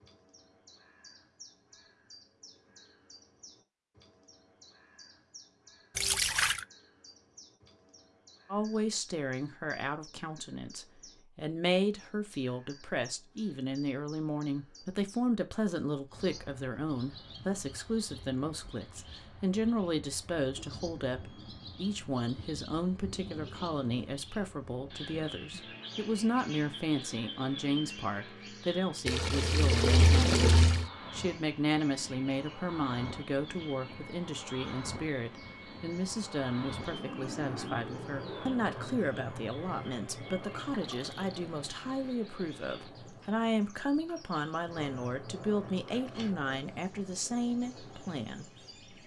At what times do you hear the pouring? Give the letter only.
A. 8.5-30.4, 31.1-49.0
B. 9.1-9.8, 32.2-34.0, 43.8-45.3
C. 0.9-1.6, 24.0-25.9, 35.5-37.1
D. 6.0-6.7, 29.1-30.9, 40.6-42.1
D.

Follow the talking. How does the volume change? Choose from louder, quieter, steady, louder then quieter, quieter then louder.
steady.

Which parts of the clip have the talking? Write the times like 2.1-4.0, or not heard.
8.5-30.4, 31.1-49.0.